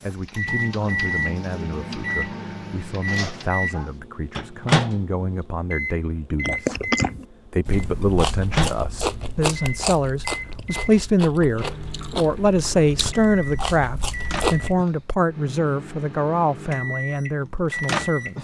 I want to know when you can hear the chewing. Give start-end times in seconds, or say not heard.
6.5-14.8.